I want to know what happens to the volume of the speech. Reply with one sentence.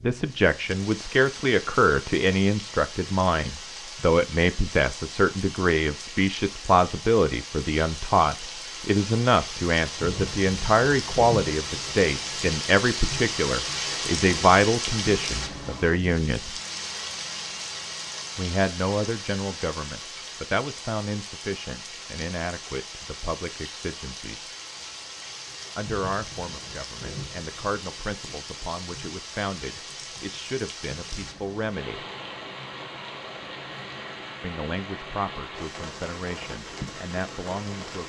The loudness of the speech goes down.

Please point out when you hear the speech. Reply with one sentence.
You can hear the speech from 0.0 to 16.6 s, from 18.4 to 24.5 s, from 25.8 to 32.0 s and from 34.4 to 38.0 s.